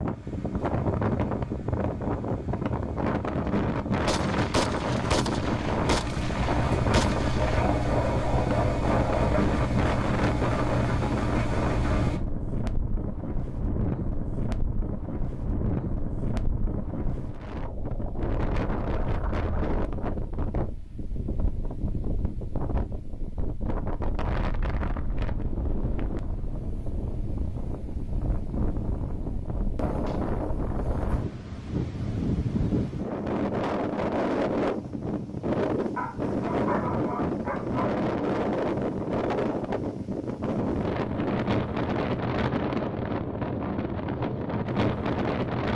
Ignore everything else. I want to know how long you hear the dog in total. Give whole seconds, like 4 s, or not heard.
4 s.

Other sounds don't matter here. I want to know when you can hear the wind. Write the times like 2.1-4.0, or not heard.
0.0-45.7.